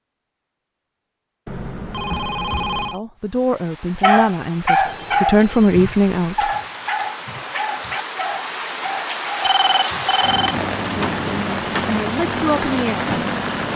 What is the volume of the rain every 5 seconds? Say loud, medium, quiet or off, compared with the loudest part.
quiet, medium, loud.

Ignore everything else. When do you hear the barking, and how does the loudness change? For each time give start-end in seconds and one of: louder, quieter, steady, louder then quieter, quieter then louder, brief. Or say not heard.
4.0-10.2 quieter.